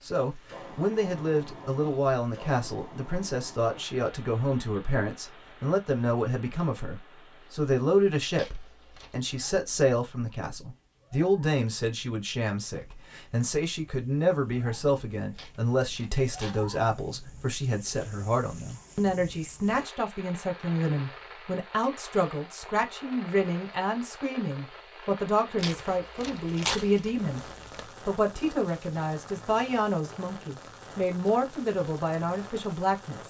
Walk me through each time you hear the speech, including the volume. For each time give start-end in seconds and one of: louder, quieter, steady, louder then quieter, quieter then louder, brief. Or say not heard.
0.0-33.2 steady.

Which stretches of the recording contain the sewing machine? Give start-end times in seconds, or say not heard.
not heard.